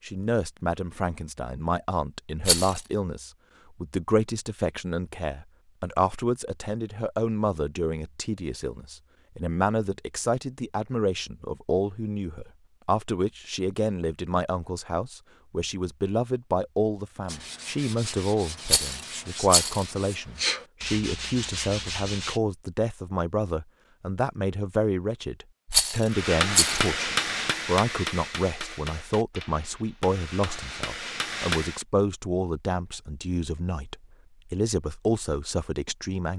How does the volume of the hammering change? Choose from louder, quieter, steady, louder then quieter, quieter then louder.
quieter then louder.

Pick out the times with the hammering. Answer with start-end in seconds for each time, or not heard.
26.1-31.9.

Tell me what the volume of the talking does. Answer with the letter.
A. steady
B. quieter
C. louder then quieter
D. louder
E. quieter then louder
A.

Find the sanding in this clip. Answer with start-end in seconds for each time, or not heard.
17.2-22.4.